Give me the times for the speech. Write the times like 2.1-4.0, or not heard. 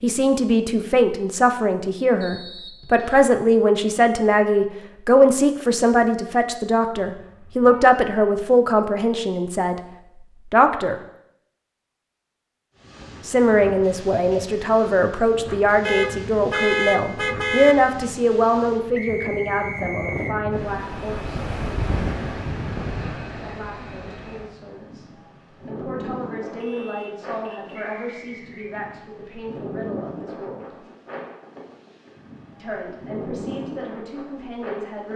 0.0-9.8, 10.5-10.9, 13.2-21.4, 23.4-25.1, 25.6-30.7, 32.5-35.1.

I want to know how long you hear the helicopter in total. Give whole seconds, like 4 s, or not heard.
not heard.